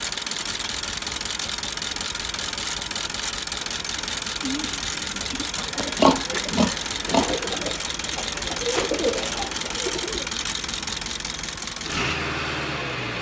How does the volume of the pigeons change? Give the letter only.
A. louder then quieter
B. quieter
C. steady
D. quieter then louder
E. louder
E.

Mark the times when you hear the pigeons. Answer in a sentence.
The pigeons can be heard from 4.3 to 10.3 s.